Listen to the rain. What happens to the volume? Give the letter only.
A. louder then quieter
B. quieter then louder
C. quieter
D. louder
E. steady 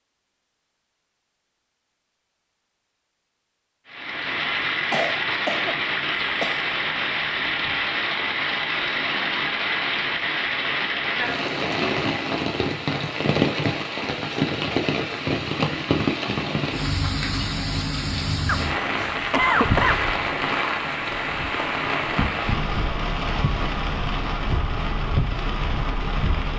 E.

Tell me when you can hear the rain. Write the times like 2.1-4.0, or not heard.
3.9-26.5.